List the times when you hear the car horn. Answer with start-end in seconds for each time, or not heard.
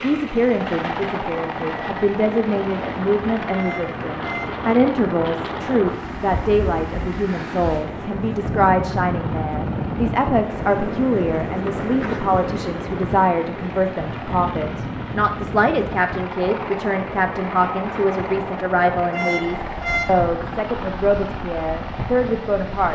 3.5-4.6, 19.1-20.2.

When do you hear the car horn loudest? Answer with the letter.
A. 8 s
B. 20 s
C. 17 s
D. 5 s
B.